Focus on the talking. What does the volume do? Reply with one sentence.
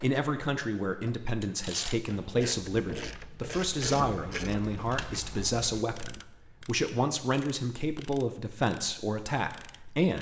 The loudness of the talking stays about the same.